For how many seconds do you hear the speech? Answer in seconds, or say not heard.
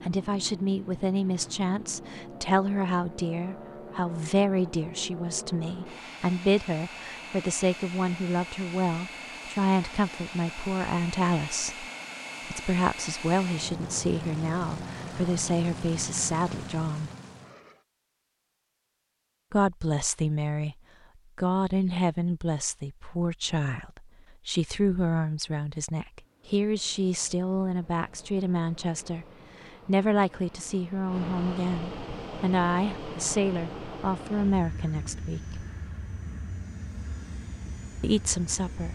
32 s.